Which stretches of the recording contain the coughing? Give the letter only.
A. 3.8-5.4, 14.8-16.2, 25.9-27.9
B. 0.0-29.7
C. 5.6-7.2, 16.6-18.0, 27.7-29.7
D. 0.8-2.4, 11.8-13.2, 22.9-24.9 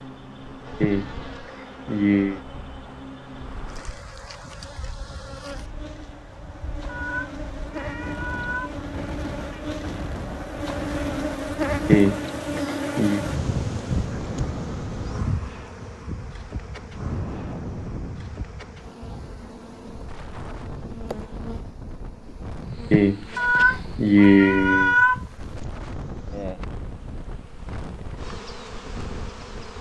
D.